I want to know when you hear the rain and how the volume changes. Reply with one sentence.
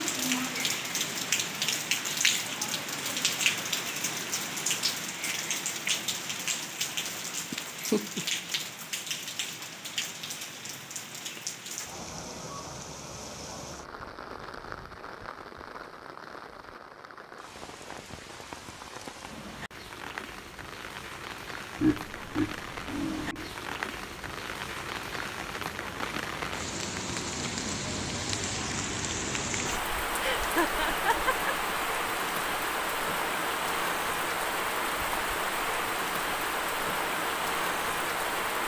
You can hear the rain from 0.0 to 38.6 s, getting quieter then louder.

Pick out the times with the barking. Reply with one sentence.
The barking can't be heard in this clip.